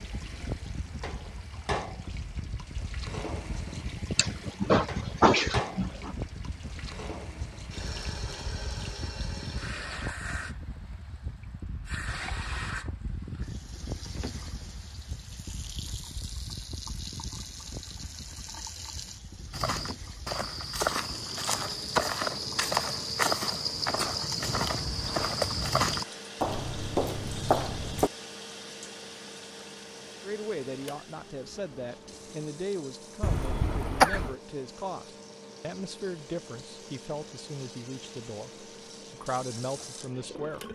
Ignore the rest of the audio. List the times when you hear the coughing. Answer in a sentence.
The coughing can be heard from 4.2 to 6.2 s and from 33.2 to 34.4 s.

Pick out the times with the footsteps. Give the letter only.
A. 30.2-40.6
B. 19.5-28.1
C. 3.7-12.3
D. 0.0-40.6
B.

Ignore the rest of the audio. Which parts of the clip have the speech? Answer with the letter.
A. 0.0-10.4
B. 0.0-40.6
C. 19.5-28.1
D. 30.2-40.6
D.